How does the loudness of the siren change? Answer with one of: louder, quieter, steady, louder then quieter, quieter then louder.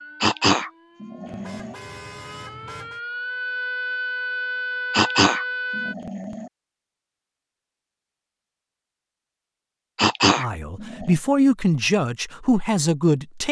louder.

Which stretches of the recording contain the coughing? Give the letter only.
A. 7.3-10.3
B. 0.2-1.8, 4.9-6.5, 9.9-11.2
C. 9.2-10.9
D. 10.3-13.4
B.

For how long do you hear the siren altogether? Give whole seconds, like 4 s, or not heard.
6 s.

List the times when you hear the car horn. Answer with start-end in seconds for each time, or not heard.
1.2-3.0.